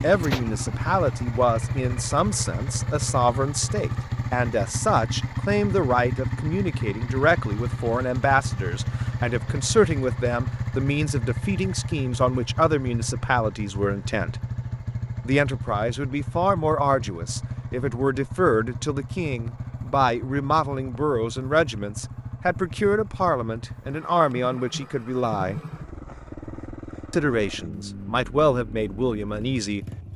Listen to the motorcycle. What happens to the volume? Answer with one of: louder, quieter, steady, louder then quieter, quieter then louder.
quieter.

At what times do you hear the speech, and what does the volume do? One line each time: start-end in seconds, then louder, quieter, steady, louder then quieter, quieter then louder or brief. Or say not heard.
0.0-14.3 steady
15.2-25.6 steady
27.1-29.9 brief.